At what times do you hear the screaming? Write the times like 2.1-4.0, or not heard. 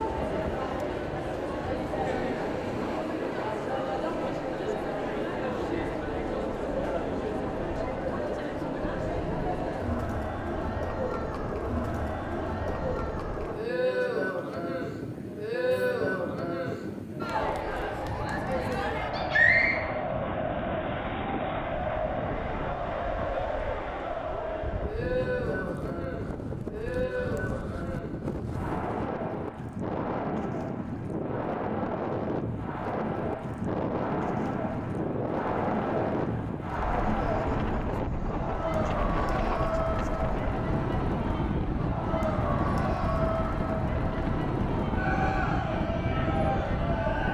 19.1-19.8.